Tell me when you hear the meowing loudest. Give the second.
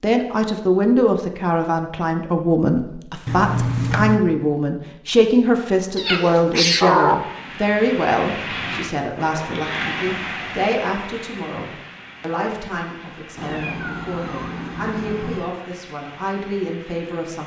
7 s.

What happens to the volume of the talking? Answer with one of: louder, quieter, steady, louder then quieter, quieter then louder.
quieter.